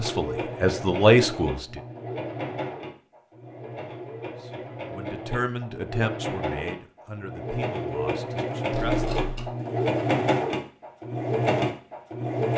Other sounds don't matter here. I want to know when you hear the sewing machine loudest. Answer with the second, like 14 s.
10 s.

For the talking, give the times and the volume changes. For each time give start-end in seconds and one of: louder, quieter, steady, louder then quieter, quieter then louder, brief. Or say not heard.
0.0-1.8 brief
4.4-9.2 quieter.